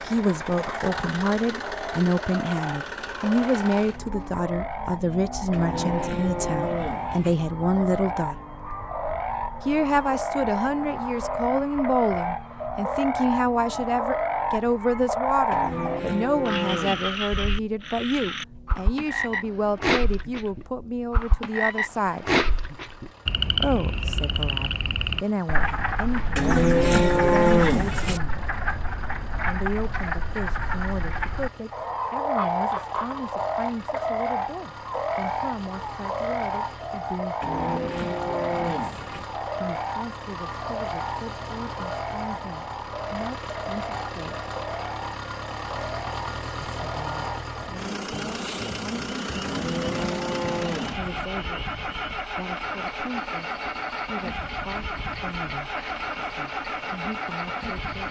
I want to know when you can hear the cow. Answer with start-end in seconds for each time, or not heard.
5.5-7.3, 15.5-17.1, 26.4-28.2, 37.4-39.2, 49.4-51.3.